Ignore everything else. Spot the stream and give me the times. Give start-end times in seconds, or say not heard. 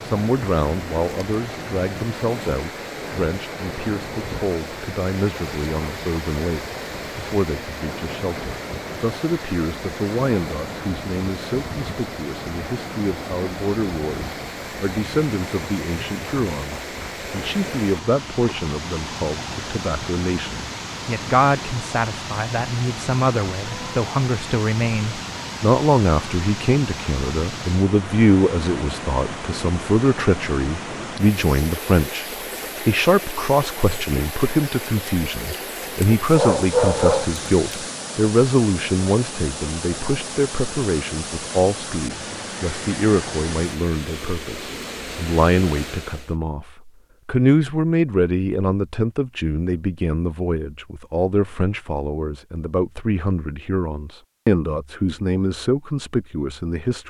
0.0-46.4.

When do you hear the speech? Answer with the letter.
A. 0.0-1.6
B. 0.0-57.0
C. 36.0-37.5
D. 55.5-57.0
B.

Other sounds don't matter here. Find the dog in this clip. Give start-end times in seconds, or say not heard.
36.0-37.5.